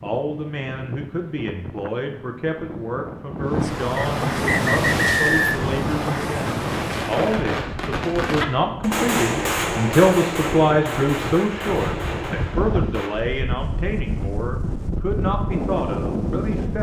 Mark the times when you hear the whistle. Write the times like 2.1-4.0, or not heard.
4.0-5.6.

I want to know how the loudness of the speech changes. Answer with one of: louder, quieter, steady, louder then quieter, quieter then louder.
louder then quieter.